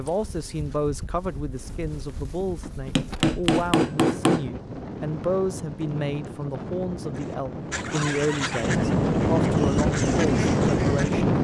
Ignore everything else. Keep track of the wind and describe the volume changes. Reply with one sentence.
The loudness of the wind goes up.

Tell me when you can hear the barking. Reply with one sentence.
You can't hear the barking here.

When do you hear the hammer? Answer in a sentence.
You can hear the hammer from 3.0 to 4.5 s.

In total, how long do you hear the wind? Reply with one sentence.
You can hear the wind for 11 seconds altogether.